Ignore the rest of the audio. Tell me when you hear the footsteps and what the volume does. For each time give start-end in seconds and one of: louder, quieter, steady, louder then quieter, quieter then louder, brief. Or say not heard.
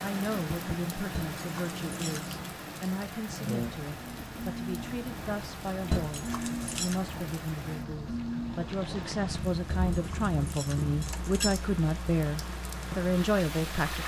not heard.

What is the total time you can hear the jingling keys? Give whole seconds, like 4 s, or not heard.
4 s.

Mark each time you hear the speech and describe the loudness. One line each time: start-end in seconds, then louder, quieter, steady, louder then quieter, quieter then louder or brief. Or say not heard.
0.0-14.0 louder.